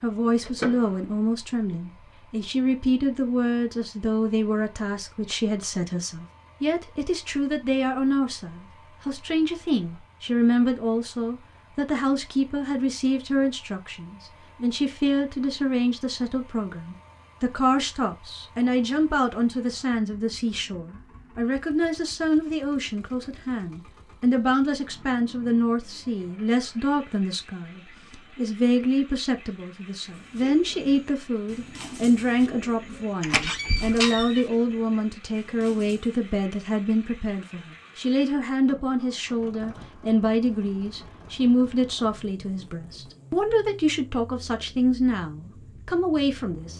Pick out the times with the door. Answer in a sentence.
You can hear the door from 0.4 to 1.1 s and from 33.2 to 34.5 s.